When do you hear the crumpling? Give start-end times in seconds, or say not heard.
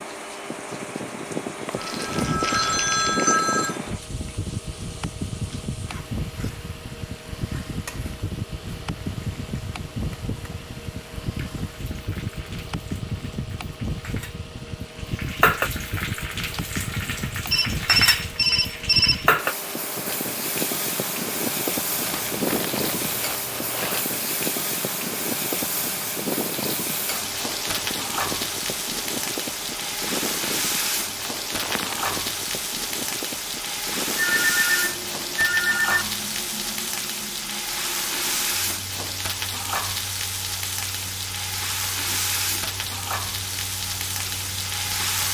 1.8-3.4, 22.0-24.1, 31.2-32.1.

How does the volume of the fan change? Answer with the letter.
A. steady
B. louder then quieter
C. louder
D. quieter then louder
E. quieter
E.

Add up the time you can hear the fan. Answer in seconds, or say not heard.
45 s.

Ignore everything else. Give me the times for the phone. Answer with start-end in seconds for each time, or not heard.
1.6-3.8, 17.5-19.2, 34.1-36.0.